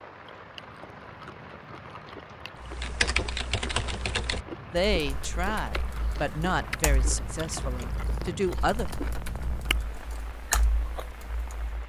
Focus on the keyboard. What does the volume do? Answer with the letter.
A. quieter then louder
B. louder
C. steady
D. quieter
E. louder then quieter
A.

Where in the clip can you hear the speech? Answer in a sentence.
The speech can be heard from 4.6 to 8.9 s.